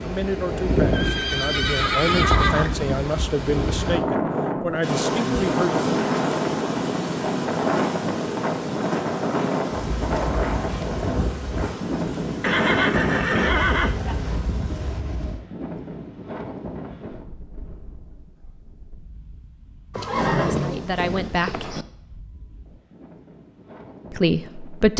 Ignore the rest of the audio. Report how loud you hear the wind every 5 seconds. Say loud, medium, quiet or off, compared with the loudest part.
loud, loud, loud, quiet, quiet.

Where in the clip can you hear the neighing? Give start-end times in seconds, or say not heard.
0.9-2.8, 12.4-14.2, 19.9-21.9.